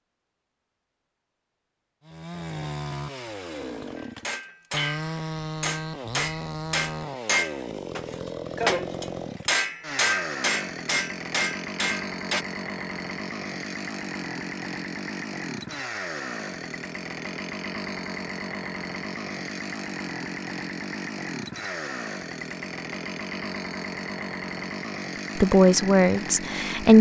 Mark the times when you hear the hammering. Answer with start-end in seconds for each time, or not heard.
4.0-12.4.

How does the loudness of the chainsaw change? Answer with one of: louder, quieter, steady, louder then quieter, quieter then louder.
steady.